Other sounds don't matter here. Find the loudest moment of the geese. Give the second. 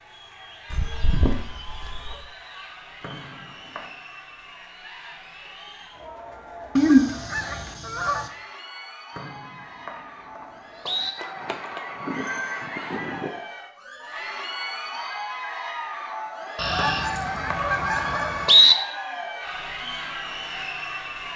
7 s.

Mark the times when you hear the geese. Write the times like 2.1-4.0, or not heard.
0.7-2.2, 6.8-8.3, 11.2-13.3, 16.6-18.6.